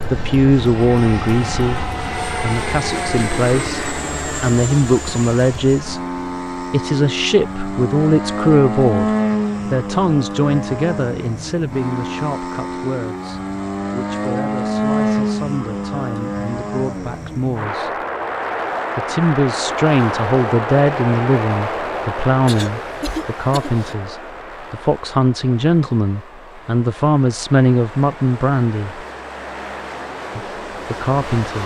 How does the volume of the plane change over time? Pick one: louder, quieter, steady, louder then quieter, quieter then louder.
quieter.